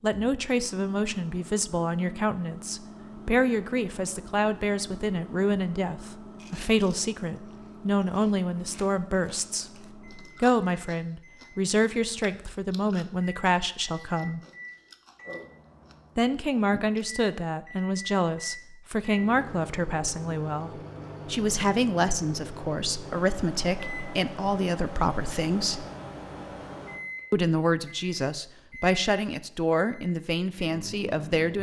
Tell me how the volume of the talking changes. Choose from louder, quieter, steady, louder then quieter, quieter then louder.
steady.